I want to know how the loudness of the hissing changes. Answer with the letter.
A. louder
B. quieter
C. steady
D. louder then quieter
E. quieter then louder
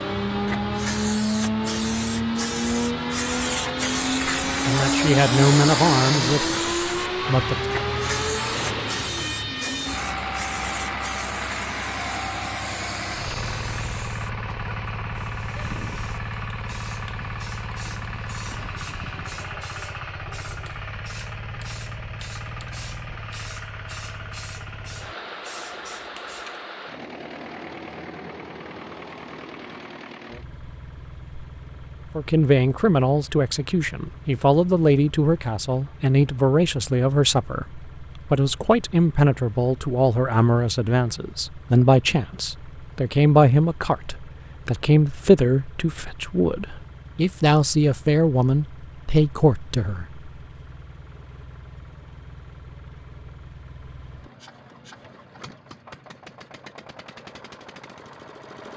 B.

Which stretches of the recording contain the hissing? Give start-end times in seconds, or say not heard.
0.0-26.6.